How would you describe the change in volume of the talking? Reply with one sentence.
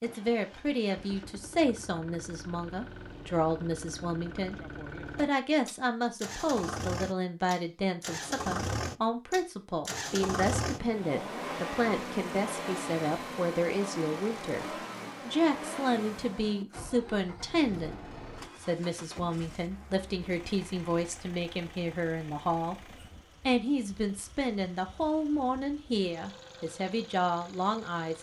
The loudness of the talking stays about the same.